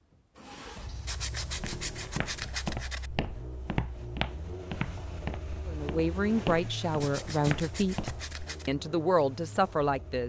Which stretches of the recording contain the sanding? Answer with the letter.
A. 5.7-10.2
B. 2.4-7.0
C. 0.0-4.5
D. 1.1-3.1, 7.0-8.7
D.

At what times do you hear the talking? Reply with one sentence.
You can hear the talking from 5.7 to 10.2 s.